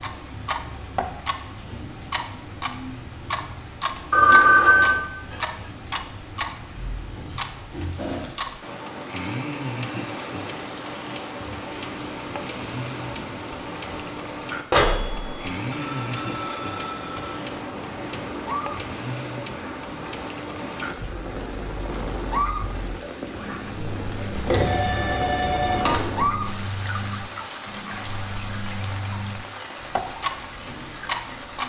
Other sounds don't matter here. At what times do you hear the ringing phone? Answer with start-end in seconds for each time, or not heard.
4.1-5.0, 14.7-17.4, 24.3-26.0.